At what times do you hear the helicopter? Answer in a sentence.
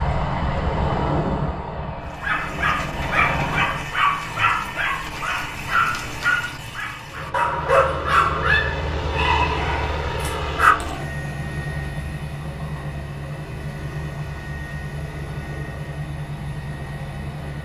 You can hear the helicopter from 0.0 to 3.9 s and from 7.0 to 17.6 s.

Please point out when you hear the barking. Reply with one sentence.
You can hear the barking from 2.1 to 10.9 s.